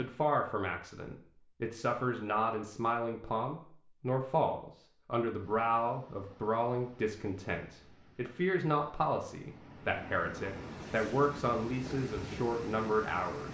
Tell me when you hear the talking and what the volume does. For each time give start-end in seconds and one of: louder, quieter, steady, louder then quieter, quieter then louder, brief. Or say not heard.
0.0-13.5 steady.